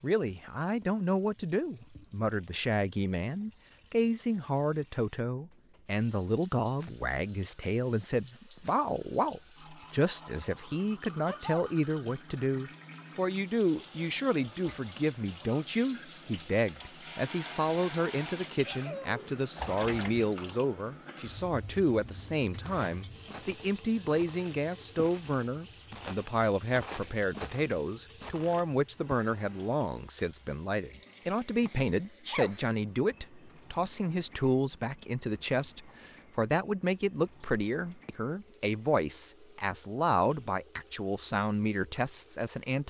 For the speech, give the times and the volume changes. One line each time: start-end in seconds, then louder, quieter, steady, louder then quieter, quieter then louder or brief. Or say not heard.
0.0-42.8 steady.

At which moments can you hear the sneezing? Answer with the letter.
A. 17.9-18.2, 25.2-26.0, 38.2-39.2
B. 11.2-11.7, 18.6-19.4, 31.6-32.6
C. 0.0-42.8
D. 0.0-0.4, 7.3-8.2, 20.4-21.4
B.